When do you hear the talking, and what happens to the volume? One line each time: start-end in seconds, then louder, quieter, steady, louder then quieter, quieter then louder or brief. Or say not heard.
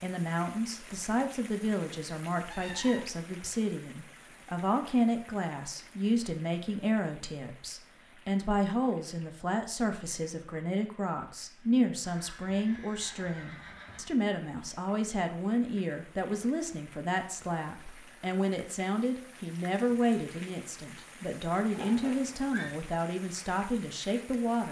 0.0-24.6 steady.